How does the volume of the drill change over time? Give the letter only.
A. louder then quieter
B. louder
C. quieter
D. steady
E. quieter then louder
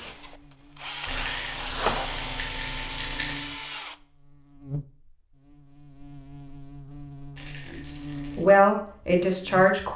D.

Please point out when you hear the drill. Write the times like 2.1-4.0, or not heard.
0.0-4.0.